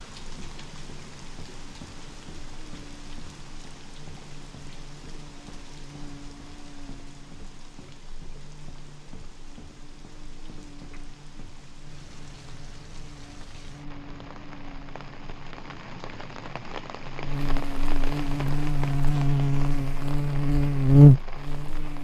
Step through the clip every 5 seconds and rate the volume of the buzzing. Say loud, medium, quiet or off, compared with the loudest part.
quiet, quiet, quiet, medium, loud.